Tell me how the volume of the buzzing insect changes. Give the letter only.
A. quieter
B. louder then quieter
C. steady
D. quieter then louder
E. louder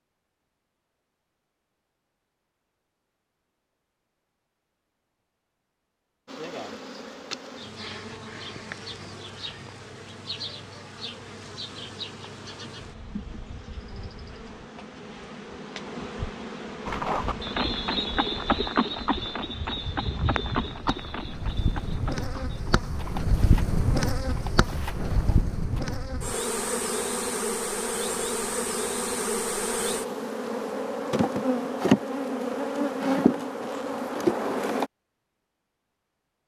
E.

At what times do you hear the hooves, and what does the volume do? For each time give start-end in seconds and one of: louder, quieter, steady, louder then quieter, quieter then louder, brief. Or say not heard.
16.9-25.8 quieter.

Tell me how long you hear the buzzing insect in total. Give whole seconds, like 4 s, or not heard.
29 s.